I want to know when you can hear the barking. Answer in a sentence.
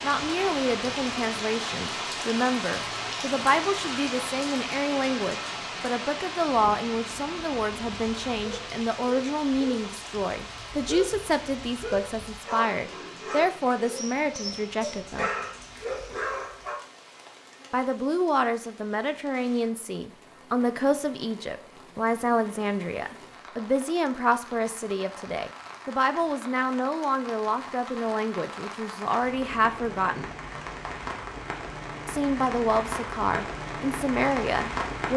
The barking can be heard from 7.7 to 16.8 s.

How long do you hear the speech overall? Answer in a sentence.
The speech can be heard for 31 seconds in total.